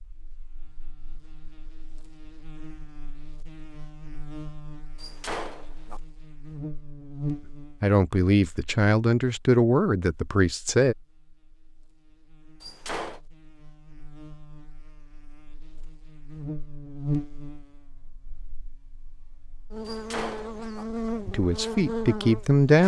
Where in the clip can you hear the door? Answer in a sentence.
You can hear the door from 5.0 to 6.0 s, from 12.6 to 13.2 s and from 19.9 to 20.9 s.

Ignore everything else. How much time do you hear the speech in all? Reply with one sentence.
You can hear the speech for 5 seconds altogether.